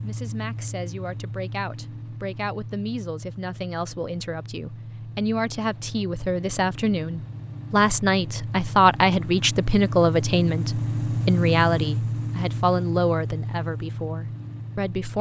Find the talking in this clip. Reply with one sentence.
The talking can be heard from 0.0 to 15.1 s.